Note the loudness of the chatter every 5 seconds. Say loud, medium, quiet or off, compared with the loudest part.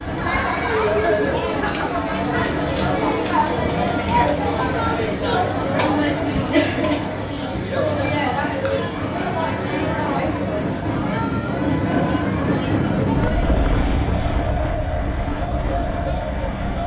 loud, loud, medium, medium.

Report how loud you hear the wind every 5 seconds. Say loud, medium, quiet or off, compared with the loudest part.
medium, medium, loud, medium.